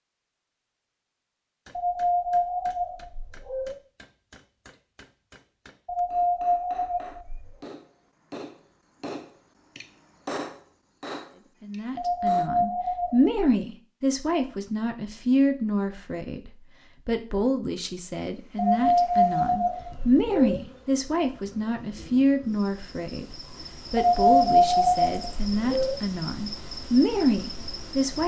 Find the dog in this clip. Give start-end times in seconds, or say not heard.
1.8-3.8, 5.8-7.5, 11.9-13.3, 18.6-20.6, 23.9-25.9.